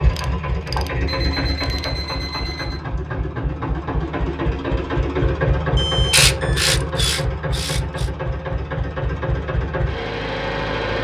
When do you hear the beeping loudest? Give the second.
6 s.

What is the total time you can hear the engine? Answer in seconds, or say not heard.
11 s.